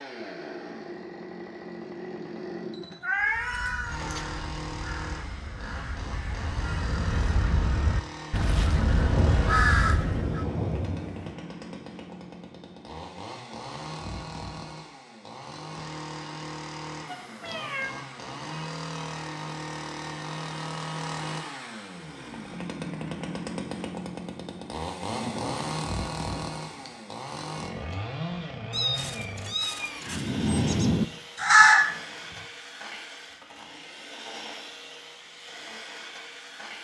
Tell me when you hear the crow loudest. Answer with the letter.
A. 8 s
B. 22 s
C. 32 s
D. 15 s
C.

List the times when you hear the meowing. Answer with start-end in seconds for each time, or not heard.
3.0-4.8, 17.1-18.0, 28.7-30.3.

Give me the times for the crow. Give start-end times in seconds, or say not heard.
3.1-10.4, 30.1-32.0.